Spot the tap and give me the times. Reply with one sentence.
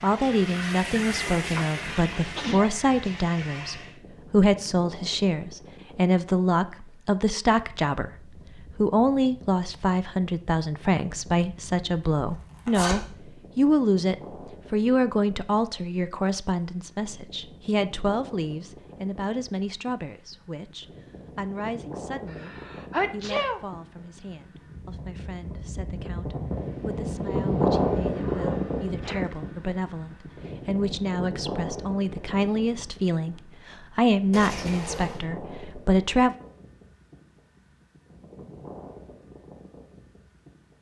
You can hear the tap from 0.0 to 4.0 s.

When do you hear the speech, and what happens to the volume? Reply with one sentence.
You can hear the speech from 0.0 to 36.4 s, getting quieter then louder.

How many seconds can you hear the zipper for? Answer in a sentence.
The zipper can be heard for 2 seconds in total.